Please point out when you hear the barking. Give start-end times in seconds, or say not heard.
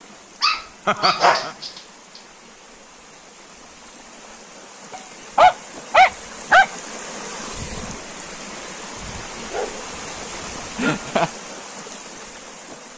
0.4-1.7, 4.9-6.7, 8.9-11.1.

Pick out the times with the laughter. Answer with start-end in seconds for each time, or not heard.
0.8-1.6, 10.8-11.3.